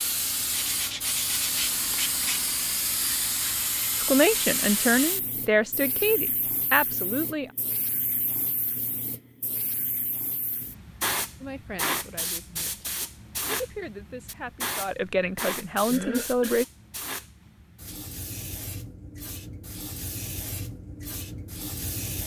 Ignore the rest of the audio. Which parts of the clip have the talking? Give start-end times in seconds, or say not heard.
4.0-7.5, 11.4-16.6.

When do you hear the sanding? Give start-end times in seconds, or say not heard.
0.5-2.4.